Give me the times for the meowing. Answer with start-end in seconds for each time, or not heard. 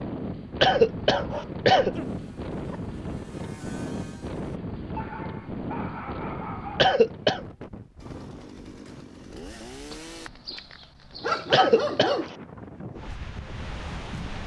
not heard.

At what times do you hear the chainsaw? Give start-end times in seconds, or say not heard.
1.9-4.6, 8.0-10.3.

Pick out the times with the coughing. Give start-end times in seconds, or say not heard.
0.6-2.0, 6.8-7.4, 11.5-12.2.